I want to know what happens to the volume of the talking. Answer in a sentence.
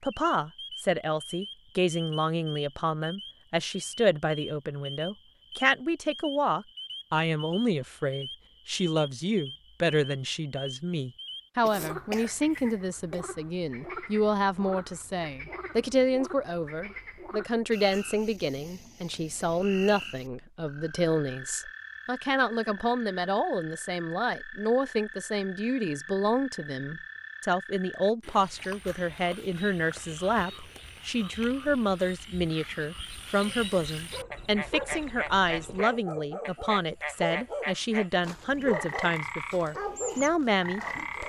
The volume of the talking stays about the same.